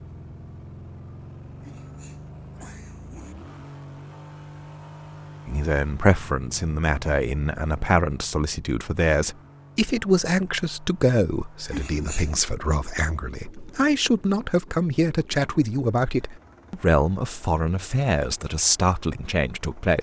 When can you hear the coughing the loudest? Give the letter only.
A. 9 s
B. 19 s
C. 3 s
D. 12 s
D.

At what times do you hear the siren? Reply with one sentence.
You can't hear the siren here.